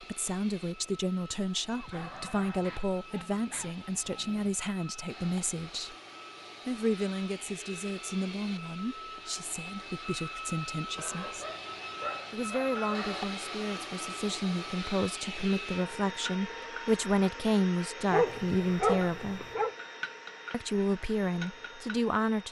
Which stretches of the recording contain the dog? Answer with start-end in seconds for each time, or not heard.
1.7-4.5, 10.9-13.3, 18.1-19.8.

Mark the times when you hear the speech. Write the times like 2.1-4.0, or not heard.
0.0-6.0, 6.7-11.4, 12.3-19.4, 20.5-22.4.